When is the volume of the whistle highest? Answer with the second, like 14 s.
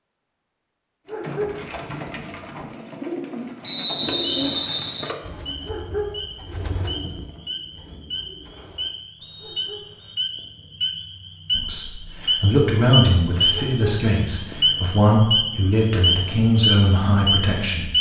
4 s.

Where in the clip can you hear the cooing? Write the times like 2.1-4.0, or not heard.
1.1-8.9.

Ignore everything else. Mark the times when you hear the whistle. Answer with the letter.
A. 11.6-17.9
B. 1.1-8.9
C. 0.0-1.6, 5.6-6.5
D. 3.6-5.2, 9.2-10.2
D.